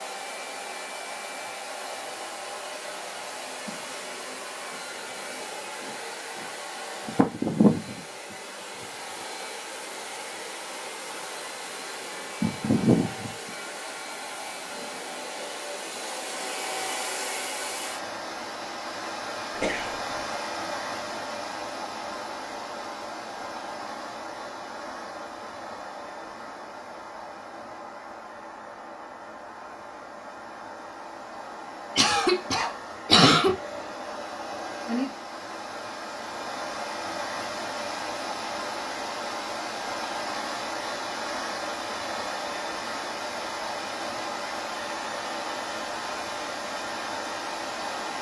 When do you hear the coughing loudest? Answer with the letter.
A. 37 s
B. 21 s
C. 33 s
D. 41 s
C.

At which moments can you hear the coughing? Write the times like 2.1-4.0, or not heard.
19.6-20.4, 31.9-33.5.